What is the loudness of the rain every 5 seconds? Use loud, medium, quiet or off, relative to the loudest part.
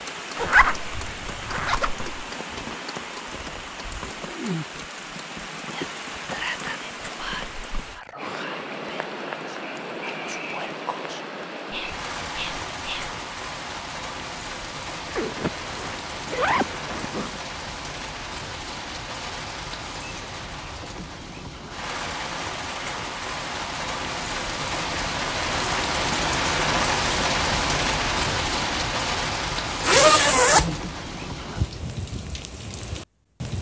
medium, medium, medium, medium, medium, loud, medium.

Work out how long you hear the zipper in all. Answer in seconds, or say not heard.
5 s.